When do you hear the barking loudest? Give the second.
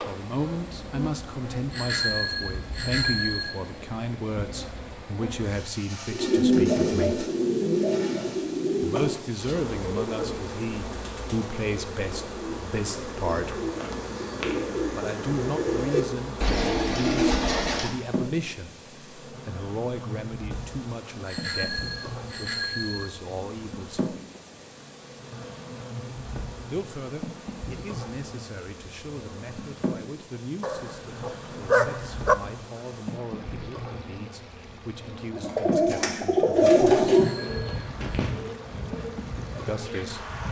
32 s.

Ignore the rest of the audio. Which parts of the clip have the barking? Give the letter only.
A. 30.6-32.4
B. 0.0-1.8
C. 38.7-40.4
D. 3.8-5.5
A.